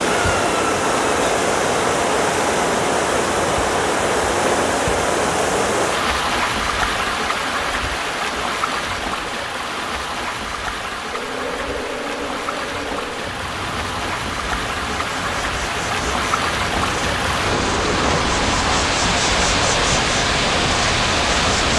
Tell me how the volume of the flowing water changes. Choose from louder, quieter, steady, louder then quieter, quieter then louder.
quieter then louder.